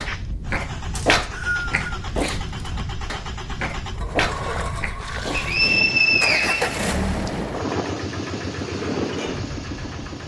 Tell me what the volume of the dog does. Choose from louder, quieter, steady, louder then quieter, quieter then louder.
quieter then louder.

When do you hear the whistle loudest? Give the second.
6 s.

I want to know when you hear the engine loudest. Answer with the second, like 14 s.
7 s.